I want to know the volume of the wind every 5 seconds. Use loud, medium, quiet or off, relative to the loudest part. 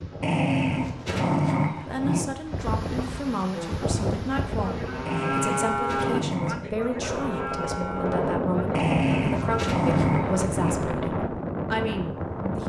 medium, loud, loud.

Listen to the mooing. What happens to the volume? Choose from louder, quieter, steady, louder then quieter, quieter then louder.
louder then quieter.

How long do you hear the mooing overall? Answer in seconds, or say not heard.
6 s.